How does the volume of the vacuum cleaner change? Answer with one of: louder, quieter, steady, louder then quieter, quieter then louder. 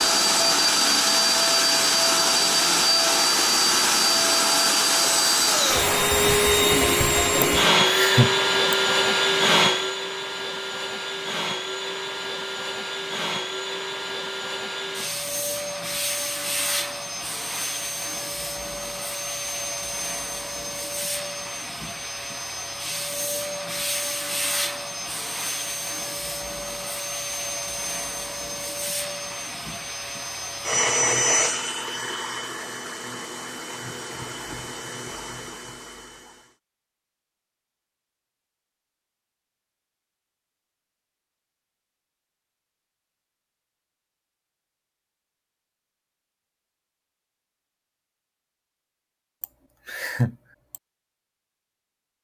quieter.